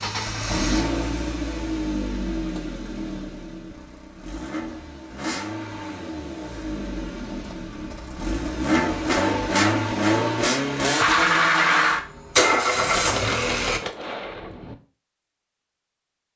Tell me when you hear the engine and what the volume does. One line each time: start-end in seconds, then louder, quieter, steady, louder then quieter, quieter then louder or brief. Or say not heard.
0.0-13.8 quieter then louder.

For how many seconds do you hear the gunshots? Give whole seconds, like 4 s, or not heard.
2 s.